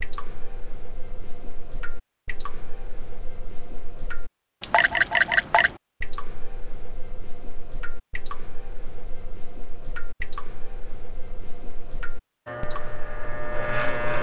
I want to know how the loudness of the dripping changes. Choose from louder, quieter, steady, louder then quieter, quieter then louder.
louder then quieter.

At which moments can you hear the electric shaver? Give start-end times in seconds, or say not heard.
12.4-14.1.